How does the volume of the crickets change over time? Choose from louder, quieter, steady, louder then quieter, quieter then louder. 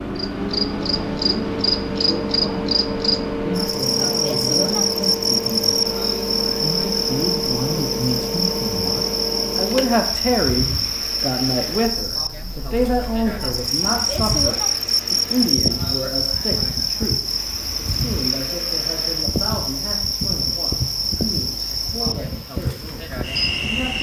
steady.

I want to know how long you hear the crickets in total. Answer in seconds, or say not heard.
24 s.